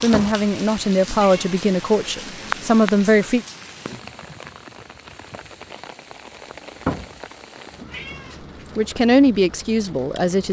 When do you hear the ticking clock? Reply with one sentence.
The ticking clock can't be heard in this clip.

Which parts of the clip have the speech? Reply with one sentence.
You can hear the speech from 0.0 to 3.5 s and from 8.8 to 10.4 s.